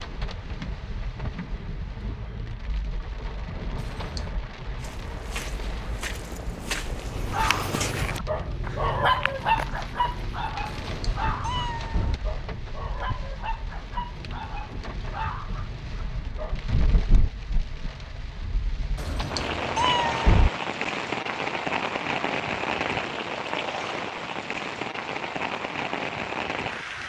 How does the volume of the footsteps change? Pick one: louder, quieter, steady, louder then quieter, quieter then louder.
louder then quieter.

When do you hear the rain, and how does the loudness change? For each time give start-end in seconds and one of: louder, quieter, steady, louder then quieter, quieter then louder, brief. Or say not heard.
0.0-27.0 louder.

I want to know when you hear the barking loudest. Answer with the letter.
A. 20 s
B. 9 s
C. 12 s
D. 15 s
B.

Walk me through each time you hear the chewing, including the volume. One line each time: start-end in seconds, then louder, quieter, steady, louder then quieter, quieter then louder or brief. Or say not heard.
not heard.